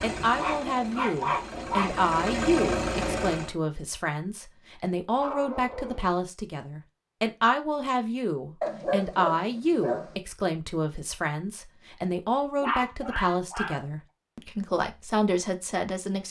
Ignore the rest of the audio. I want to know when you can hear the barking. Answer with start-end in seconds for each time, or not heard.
0.3-1.9, 5.2-6.2, 8.6-10.2, 12.6-13.8.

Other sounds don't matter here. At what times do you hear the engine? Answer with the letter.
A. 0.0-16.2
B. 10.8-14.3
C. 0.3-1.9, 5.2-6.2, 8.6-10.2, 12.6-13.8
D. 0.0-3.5
D.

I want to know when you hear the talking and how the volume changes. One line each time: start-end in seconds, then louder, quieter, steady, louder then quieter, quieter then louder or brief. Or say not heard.
0.0-16.2 steady.